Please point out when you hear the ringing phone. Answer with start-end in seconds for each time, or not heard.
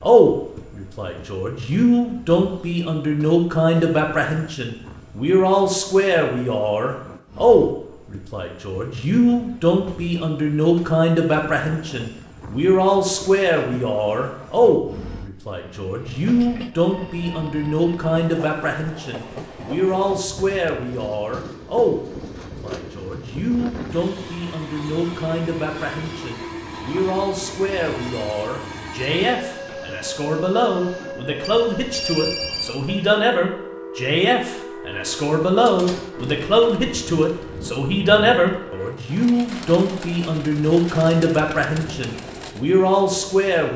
31.4-32.7.